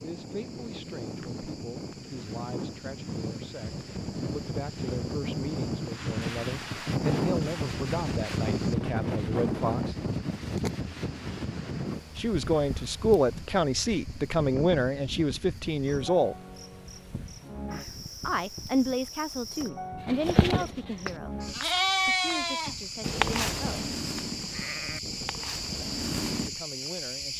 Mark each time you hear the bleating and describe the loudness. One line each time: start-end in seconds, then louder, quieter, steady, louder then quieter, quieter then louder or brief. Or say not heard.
20.0-26.5 louder then quieter.